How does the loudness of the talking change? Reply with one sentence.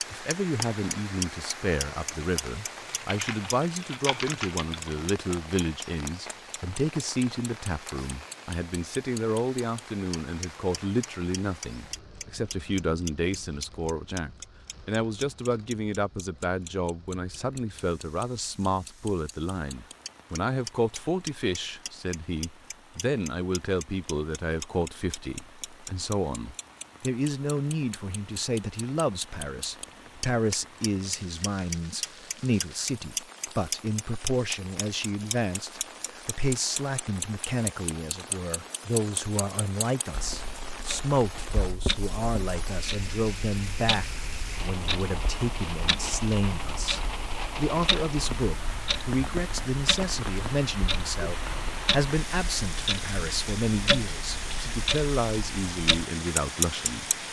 The volume of the talking stays about the same.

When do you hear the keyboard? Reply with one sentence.
The keyboard can be heard from 2.9 to 4.9 s.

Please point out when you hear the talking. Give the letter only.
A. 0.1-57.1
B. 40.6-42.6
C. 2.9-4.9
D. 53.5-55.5
A.